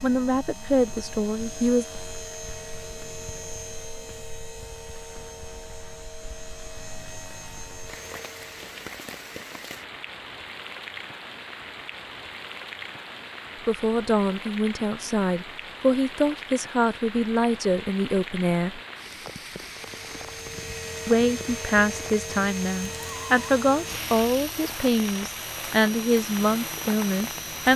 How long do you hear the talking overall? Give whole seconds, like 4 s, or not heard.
14 s.